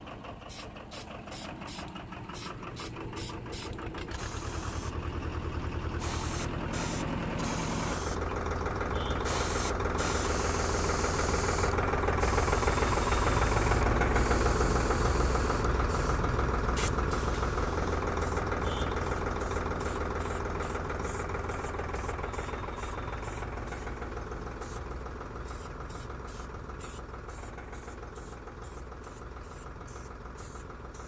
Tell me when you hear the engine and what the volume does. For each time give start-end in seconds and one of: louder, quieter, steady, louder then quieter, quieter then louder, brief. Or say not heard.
0.0-31.0 louder then quieter.